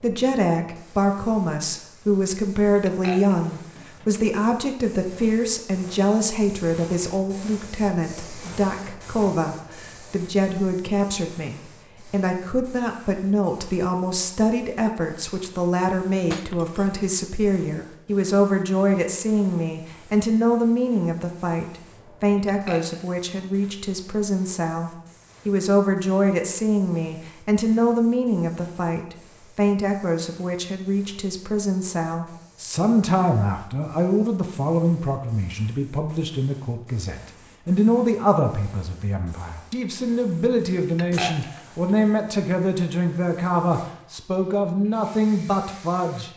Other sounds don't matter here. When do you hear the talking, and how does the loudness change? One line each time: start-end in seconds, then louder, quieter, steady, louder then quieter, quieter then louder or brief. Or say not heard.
0.0-46.3 steady.